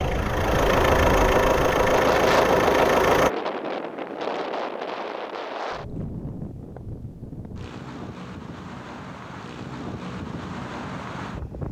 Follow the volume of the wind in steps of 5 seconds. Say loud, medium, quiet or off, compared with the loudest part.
loud, medium, medium.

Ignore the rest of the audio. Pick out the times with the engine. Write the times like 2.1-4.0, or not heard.
0.0-3.3.